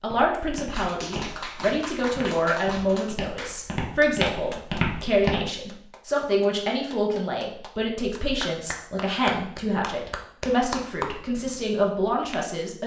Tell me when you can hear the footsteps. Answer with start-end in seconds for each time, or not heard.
0.0-5.4.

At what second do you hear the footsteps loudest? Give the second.
5 s.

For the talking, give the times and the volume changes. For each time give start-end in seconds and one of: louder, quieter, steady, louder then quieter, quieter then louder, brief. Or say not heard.
0.0-12.8 steady.